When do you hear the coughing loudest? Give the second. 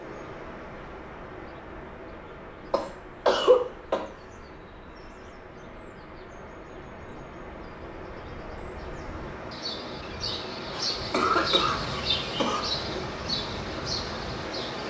3 s.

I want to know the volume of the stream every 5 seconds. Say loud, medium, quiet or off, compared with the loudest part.
medium, medium, loud.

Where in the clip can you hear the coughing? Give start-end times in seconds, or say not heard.
2.7-4.0, 10.7-12.6.